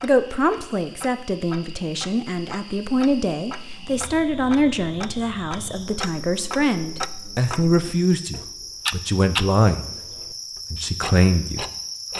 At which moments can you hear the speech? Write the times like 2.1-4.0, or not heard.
0.0-9.9, 10.7-11.7.